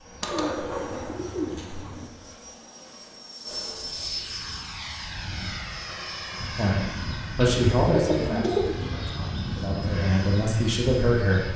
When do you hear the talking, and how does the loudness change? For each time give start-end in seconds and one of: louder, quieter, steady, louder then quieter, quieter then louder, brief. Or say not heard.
6.5-11.5 quieter then louder.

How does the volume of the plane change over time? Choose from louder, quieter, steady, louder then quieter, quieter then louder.
louder.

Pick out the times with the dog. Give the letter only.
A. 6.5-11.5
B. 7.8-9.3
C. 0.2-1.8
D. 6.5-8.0
C.